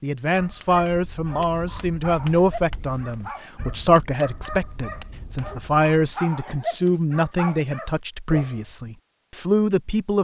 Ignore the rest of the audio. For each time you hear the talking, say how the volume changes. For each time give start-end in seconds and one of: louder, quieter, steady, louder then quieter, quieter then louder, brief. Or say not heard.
0.0-10.1 steady.